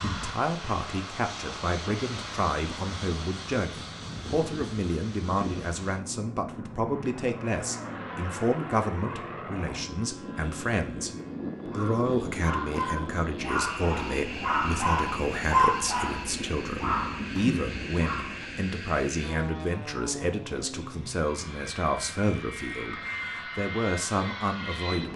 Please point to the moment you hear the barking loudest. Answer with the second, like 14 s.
16 s.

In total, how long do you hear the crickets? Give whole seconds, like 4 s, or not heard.
not heard.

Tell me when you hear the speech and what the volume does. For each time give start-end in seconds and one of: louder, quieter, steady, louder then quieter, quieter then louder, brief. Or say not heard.
0.0-25.1 steady.